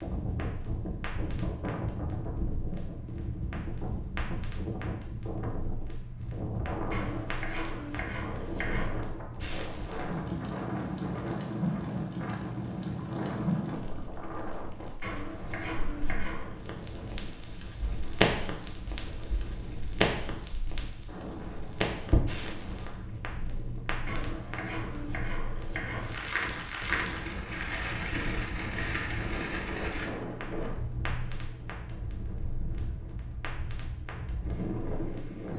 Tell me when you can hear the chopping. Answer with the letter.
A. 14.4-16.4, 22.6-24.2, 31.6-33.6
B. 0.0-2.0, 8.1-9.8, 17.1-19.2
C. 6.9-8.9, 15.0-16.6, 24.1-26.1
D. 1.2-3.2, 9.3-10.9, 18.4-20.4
C.